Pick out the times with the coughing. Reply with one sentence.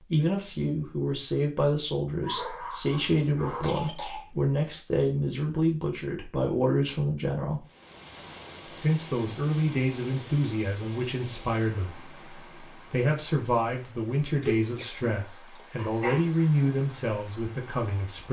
You can hear the coughing from 3.6 to 4.8 s and from 14.4 to 15.7 s.